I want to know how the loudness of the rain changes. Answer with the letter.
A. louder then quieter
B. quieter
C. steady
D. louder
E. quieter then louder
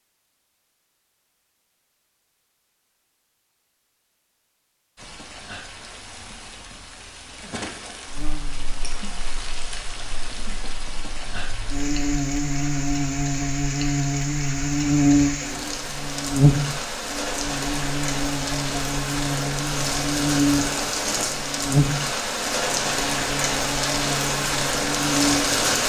D.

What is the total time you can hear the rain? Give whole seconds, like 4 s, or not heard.
21 s.